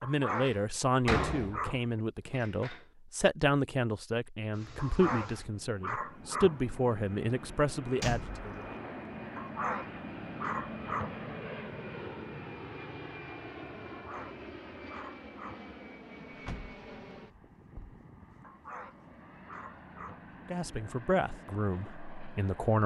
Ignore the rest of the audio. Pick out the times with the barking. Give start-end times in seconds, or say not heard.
0.0-2.0, 4.8-6.8, 9.3-11.2, 13.8-15.7, 18.4-20.2.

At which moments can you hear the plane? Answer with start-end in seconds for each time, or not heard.
4.5-22.8.